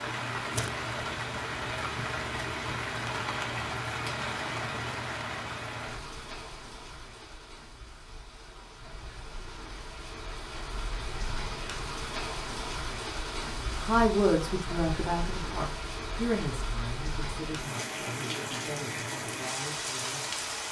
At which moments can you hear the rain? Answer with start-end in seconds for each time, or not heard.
0.0-20.6.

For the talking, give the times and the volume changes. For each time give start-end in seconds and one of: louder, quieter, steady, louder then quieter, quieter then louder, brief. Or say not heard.
13.8-20.4 quieter.